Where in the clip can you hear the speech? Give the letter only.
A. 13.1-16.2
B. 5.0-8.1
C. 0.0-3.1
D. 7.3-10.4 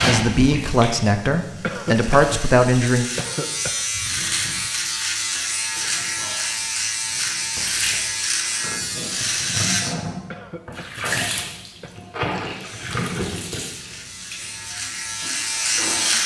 C.